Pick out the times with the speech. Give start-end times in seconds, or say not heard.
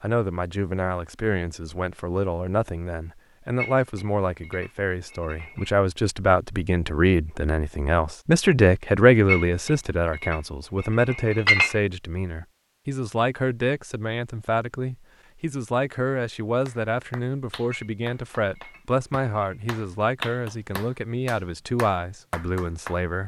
0.0-23.2.